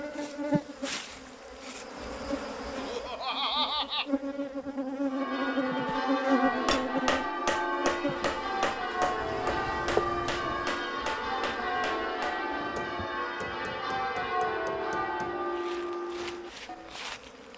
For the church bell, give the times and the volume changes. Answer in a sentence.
You can hear the church bell from 5.1 to 17.0 s, at a steady volume.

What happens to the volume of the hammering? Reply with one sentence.
The loudness of the hammering goes down.